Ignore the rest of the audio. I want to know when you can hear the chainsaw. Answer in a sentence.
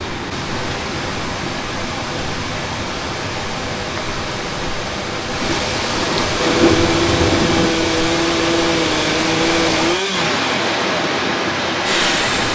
The chainsaw can be heard from 6.3 to 12.5 s.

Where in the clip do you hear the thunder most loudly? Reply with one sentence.
The loudest moment of the thunder is at 7 seconds.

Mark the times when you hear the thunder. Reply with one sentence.
The thunder can be heard from 5.3 to 7.8 s.